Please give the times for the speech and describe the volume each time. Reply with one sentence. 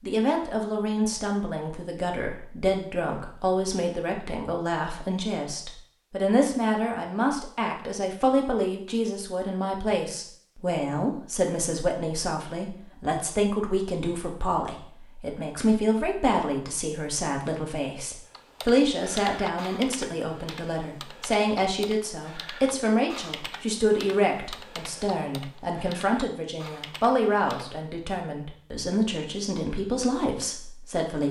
You can hear the speech from 0.0 to 31.2 s, at a steady volume.